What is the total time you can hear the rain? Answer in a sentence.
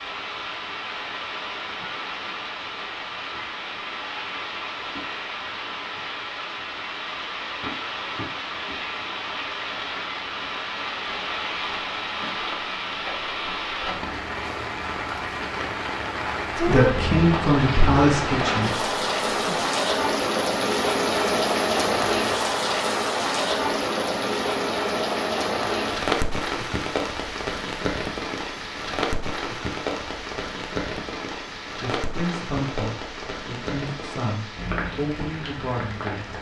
You can hear the rain for 36 seconds altogether.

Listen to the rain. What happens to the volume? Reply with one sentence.
The volume of the rain goes up, then down.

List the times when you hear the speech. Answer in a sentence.
The speech can be heard from 16.6 to 19.6 s and from 31.8 to 36.3 s.